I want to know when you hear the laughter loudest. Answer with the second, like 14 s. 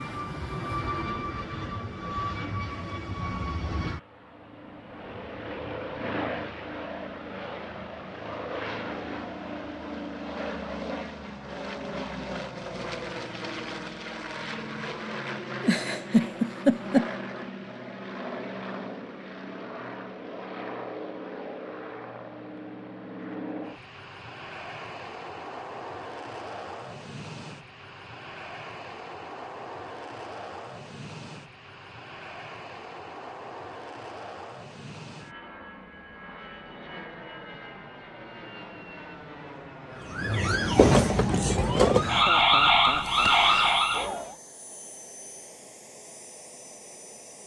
17 s.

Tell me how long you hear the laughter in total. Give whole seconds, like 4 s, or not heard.
3 s.